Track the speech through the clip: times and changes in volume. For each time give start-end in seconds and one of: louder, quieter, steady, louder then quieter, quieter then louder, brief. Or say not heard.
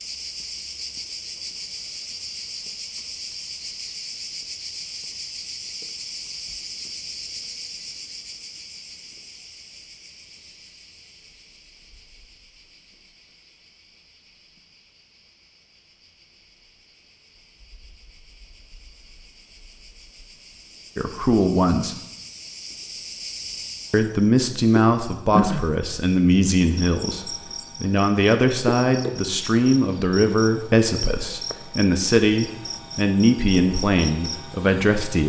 20.9-21.9 brief
23.9-35.2 steady.